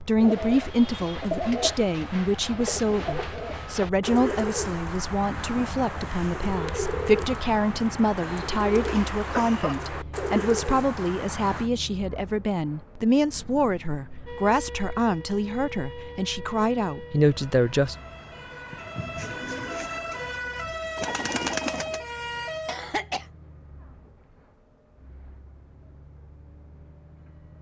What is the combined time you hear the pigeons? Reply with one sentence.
The pigeons can be heard for 15 seconds in total.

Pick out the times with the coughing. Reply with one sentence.
The coughing can be heard from 8.8 to 9.8 s and from 22.6 to 23.2 s.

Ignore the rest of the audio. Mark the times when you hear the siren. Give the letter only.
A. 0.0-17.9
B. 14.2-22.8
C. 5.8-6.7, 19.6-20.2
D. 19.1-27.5
B.